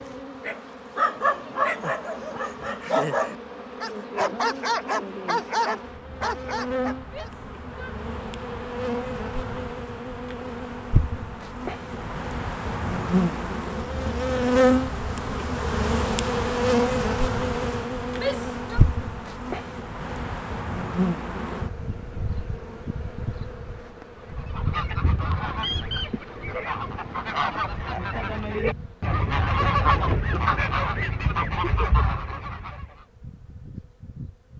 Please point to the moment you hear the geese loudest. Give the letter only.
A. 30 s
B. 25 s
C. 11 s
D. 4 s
A.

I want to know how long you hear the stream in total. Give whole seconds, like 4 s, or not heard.
not heard.